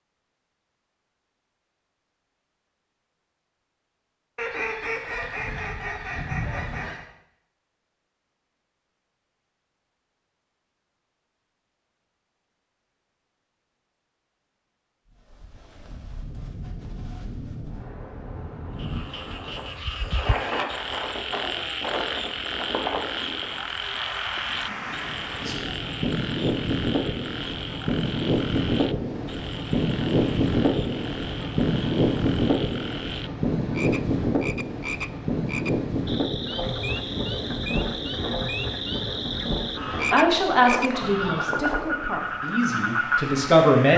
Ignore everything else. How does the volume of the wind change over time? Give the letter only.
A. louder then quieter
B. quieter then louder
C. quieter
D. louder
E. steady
A.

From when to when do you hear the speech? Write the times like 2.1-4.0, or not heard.
39.9-43.9.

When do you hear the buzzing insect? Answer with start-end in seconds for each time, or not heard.
not heard.